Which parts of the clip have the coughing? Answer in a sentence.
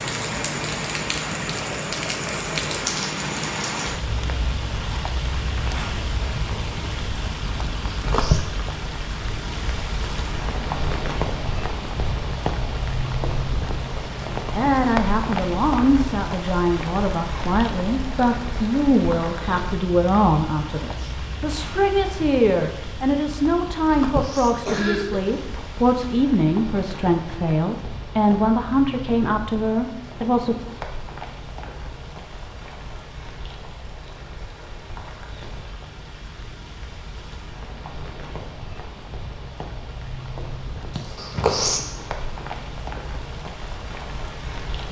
You can hear the coughing from 7.8 to 8.4 s, from 23.6 to 25.6 s and from 41.0 to 41.8 s.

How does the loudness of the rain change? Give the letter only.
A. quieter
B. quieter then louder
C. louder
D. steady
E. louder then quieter
A.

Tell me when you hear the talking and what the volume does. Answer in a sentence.
The talking can be heard from 14.6 to 30.6 s, at a steady volume.